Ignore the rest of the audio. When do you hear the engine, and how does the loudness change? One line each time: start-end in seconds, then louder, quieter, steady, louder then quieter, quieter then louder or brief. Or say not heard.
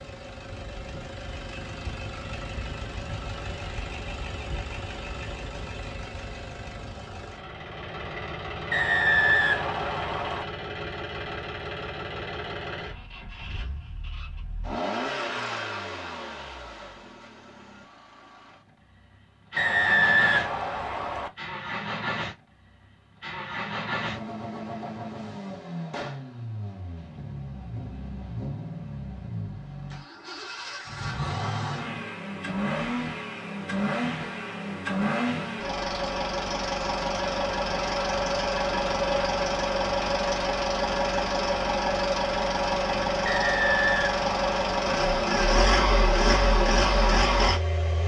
0.0-48.0 louder.